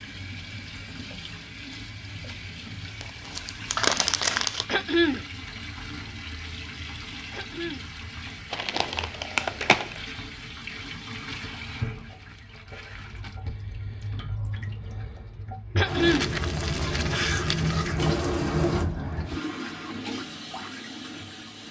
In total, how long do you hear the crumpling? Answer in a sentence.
The crumpling can be heard for 5 seconds in total.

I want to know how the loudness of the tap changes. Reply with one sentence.
The volume of the tap goes up.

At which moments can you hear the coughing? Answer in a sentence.
The coughing can be heard from 4.7 to 5.2 s, from 7.3 to 7.9 s and from 15.8 to 16.3 s.